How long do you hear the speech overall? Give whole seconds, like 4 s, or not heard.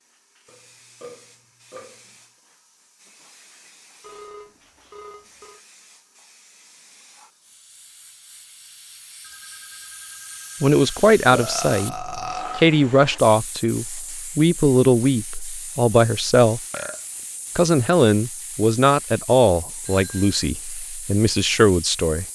11 s.